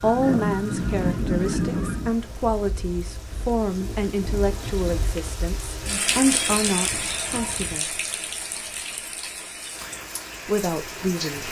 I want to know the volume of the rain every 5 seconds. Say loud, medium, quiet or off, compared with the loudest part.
medium, loud, loud.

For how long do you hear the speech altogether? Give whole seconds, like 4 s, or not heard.
9 s.